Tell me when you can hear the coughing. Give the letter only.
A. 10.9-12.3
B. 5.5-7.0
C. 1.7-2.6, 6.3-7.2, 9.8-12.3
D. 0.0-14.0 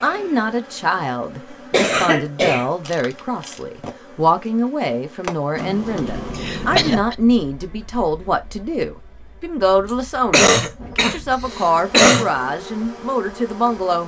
C.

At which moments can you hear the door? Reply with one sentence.
You can hear the door from 5.5 to 7.0 s.